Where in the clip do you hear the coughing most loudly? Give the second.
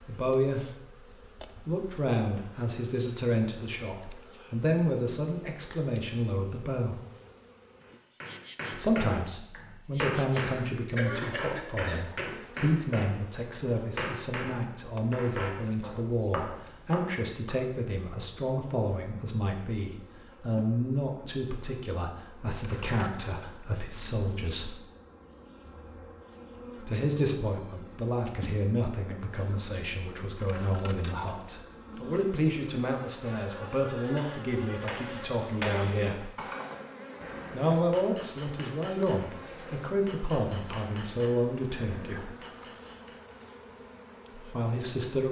11 s.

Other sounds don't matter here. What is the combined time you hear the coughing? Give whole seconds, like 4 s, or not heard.
2 s.